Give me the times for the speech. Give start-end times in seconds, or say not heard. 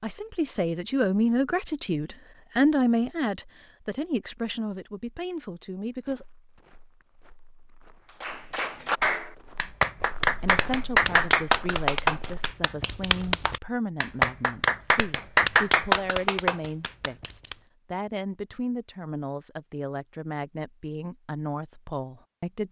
0.0-6.2, 10.4-22.6.